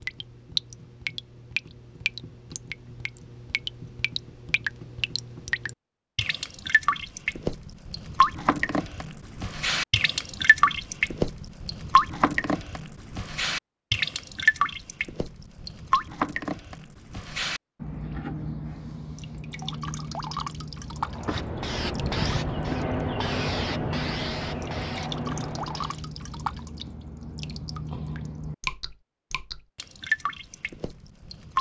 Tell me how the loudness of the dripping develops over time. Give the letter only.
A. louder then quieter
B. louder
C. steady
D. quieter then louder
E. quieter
A.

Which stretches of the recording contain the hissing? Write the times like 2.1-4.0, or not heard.
21.1-26.1.